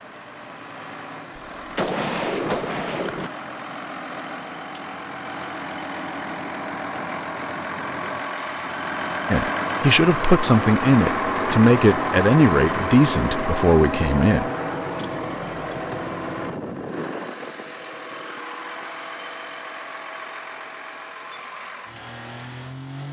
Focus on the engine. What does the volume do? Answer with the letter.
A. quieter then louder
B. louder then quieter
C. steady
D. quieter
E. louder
B.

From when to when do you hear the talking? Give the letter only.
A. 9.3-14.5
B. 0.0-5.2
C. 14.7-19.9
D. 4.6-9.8
A.